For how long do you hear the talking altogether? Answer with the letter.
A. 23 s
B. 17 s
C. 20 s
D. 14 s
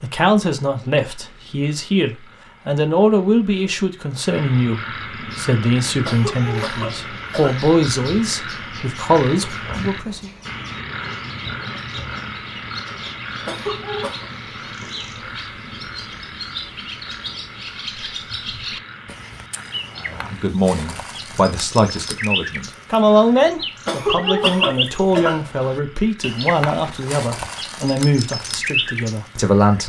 C.